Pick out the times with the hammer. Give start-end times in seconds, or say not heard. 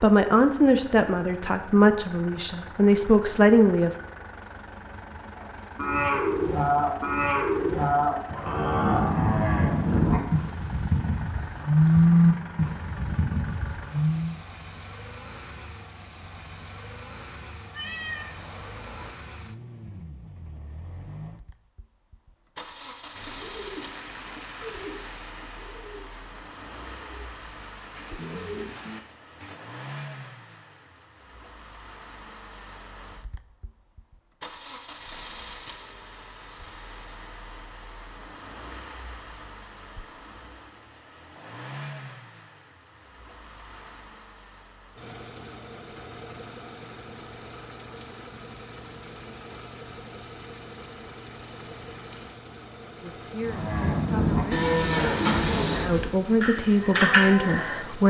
not heard.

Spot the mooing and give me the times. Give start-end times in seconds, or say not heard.
5.3-14.3, 53.4-57.8.